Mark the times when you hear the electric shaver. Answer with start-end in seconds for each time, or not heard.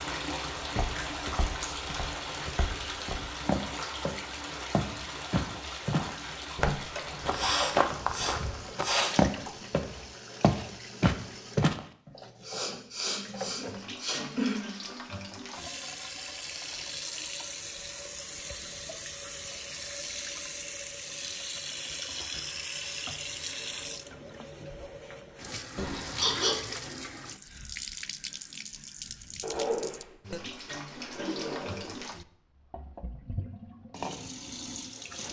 not heard.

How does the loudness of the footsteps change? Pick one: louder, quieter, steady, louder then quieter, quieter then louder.
louder.